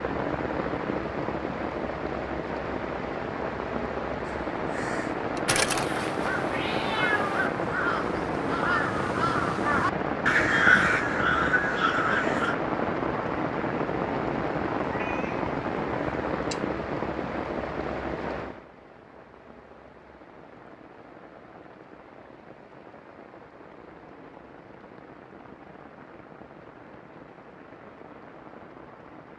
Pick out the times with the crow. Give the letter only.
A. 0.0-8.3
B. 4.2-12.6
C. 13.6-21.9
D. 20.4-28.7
B.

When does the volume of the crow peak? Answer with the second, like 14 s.
11 s.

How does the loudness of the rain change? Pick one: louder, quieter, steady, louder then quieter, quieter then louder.
quieter.